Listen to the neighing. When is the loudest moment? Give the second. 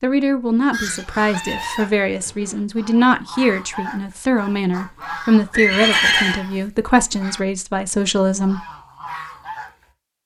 6 s.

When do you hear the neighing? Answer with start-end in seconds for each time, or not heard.
1.3-2.6, 5.5-6.4.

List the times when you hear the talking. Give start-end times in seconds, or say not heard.
0.0-8.6.